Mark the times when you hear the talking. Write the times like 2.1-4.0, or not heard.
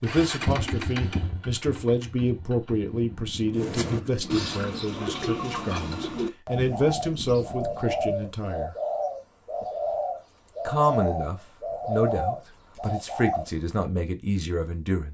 0.0-8.8, 10.7-15.0.